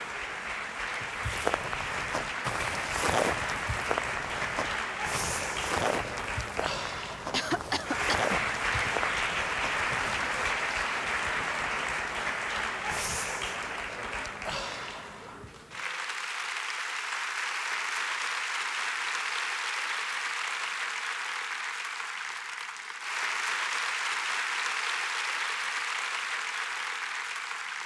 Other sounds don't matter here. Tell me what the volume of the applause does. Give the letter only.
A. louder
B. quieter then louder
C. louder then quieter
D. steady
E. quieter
D.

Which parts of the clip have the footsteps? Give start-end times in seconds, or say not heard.
1.1-10.6.